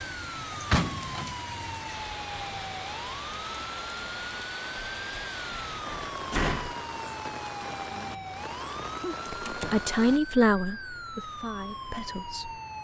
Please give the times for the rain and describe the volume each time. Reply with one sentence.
You can hear the rain from 0.0 to 10.2 s, at a steady volume.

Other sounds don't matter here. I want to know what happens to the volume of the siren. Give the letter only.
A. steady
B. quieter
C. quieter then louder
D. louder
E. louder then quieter
A.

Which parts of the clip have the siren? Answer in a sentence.
You can hear the siren from 0.0 to 12.8 s.